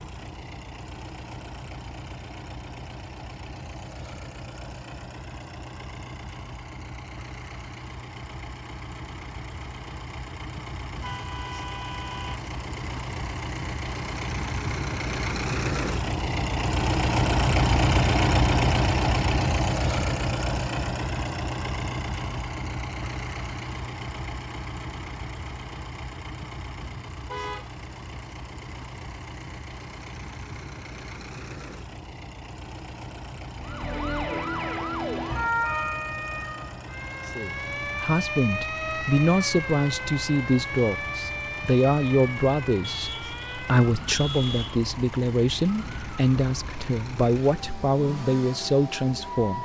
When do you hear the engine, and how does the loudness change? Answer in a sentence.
You can hear the engine from 0.0 to 49.6 s, getting louder then quieter.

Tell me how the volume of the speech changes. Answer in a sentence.
The loudness of the speech stays about the same.